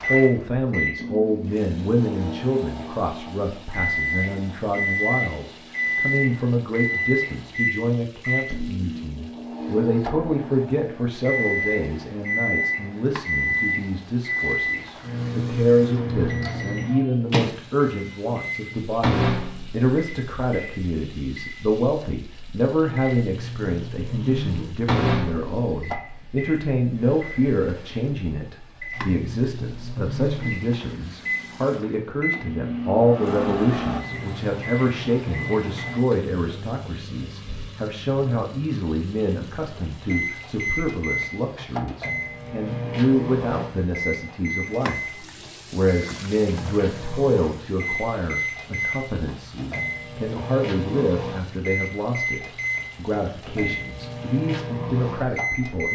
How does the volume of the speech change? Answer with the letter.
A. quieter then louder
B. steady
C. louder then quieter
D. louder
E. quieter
B.